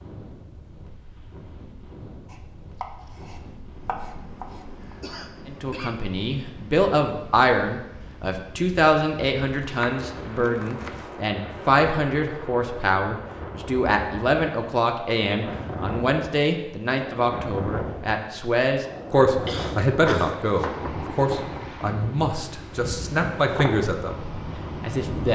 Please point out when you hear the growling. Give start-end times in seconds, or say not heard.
not heard.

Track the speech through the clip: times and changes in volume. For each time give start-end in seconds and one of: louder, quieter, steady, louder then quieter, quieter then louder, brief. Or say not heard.
5.5-24.2 steady
24.8-25.3 brief.